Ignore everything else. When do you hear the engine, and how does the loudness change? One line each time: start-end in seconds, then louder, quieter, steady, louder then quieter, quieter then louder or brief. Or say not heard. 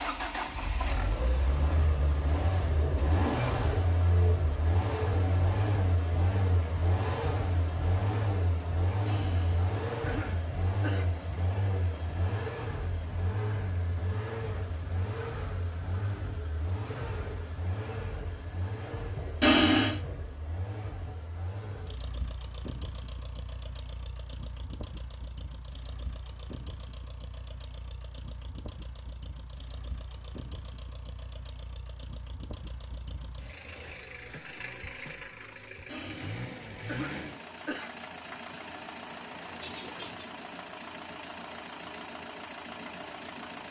0.0-43.6 quieter then louder.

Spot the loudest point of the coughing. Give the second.
20 s.